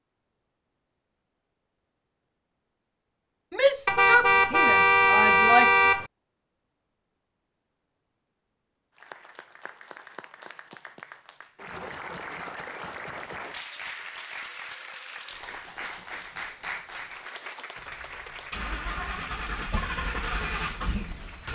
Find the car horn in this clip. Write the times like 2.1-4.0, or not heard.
3.9-6.1.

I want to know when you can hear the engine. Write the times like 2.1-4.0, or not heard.
17.8-21.4.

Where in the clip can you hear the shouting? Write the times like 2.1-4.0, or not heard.
3.5-5.8.